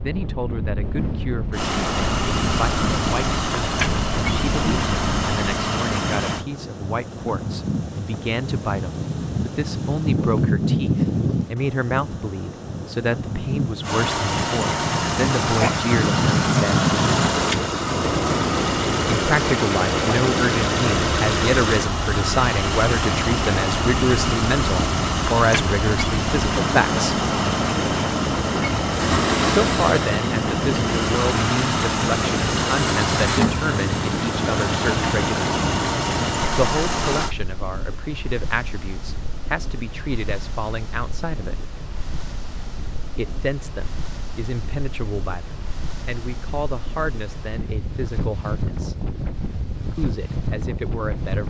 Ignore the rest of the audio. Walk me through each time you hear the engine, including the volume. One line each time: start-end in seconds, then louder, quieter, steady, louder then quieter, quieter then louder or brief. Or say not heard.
1.5-6.5 steady
13.8-37.4 steady.